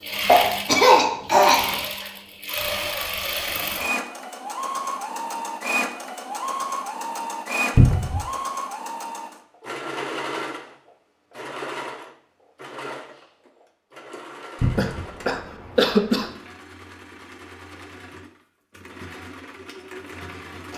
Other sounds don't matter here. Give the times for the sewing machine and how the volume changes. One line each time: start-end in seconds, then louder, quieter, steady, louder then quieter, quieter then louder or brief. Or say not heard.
0.0-20.7 quieter.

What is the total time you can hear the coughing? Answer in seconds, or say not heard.
3 s.